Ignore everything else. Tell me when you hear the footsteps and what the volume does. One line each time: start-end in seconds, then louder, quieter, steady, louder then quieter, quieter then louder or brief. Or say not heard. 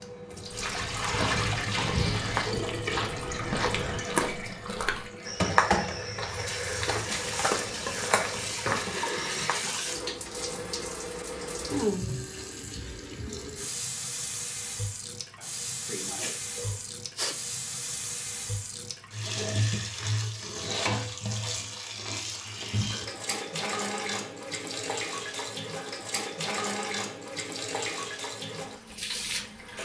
0.5-9.6 steady.